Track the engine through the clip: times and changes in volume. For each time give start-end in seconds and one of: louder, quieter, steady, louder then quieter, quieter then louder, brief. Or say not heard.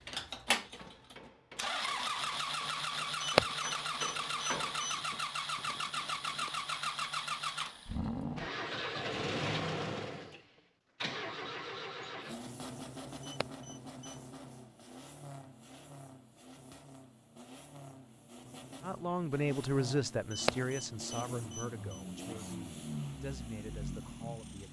0.0-24.6 quieter then louder.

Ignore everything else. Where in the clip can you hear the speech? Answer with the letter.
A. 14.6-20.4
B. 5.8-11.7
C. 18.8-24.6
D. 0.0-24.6
C.